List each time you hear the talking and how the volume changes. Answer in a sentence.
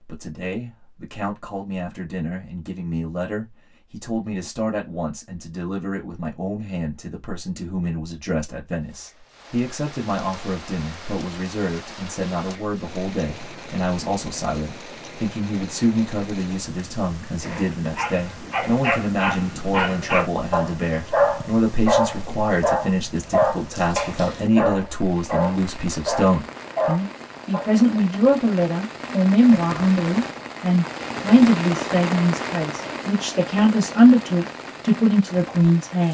The talking can be heard from 0.0 to 36.0 s, getting louder.